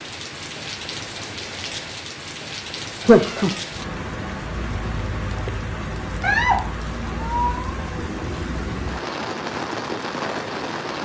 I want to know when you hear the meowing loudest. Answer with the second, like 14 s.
3 s.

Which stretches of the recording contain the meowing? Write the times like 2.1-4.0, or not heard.
3.0-3.6, 6.2-7.7.